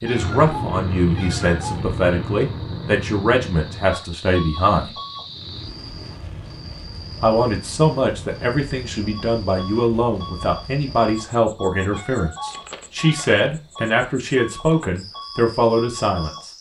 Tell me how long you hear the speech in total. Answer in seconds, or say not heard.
14 s.